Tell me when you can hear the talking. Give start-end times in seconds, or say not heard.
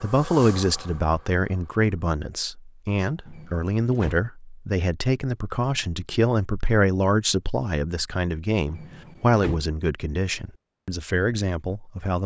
0.0-12.2.